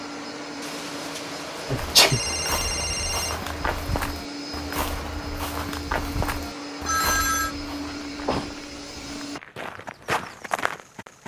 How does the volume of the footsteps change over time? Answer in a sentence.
The loudness of the footsteps goes down, then up.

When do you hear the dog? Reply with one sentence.
You can't hear the dog here.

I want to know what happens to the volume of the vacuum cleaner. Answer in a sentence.
The loudness of the vacuum cleaner stays about the same.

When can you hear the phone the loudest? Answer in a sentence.
The volume of the phone peaks at 7 seconds.